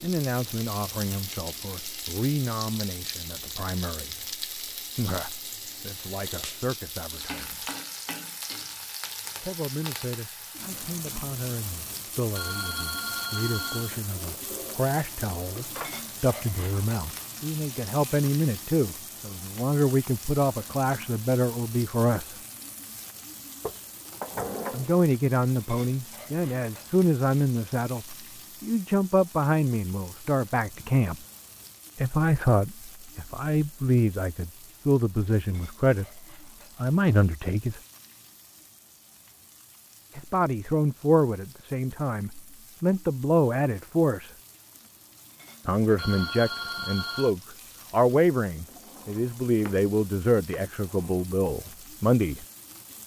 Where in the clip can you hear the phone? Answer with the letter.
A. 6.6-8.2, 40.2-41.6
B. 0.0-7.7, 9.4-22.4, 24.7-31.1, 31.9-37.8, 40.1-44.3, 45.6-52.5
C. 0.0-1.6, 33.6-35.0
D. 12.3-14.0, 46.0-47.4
D.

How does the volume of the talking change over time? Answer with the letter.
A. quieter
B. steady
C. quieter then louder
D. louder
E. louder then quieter
D.